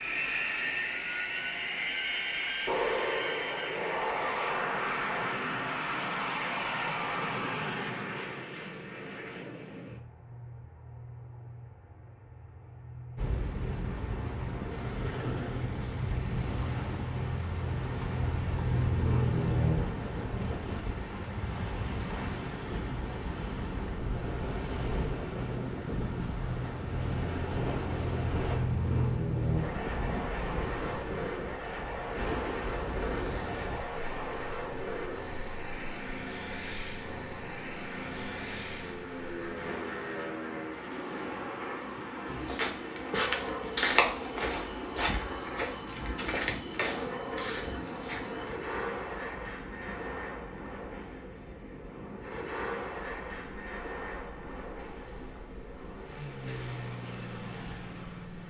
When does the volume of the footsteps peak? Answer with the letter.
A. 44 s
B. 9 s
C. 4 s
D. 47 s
A.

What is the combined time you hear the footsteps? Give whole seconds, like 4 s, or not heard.
6 s.